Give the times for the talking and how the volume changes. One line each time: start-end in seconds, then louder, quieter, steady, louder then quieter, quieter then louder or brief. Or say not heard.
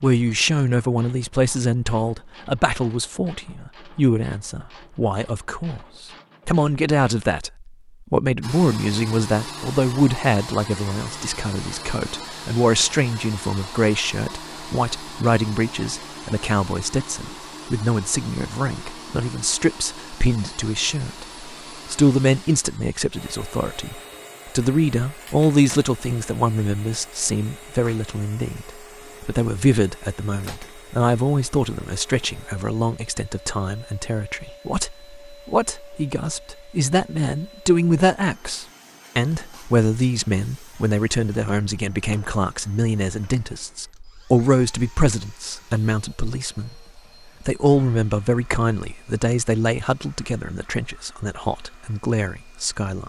0.0-53.0 steady.